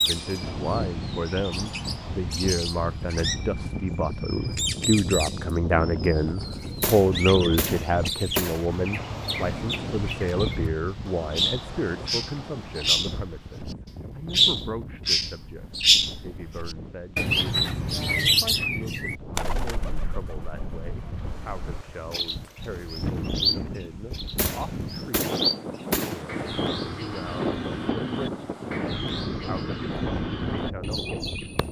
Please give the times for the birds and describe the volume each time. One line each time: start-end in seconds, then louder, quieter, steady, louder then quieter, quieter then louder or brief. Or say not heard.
0.0-31.6 louder then quieter.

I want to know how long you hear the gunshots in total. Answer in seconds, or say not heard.
4 s.